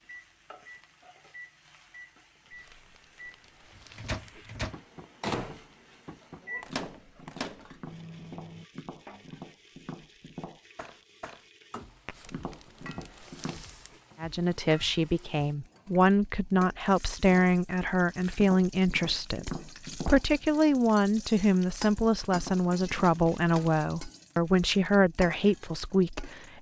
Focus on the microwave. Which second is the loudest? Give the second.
5 s.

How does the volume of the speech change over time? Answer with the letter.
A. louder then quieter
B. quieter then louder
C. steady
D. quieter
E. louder
C.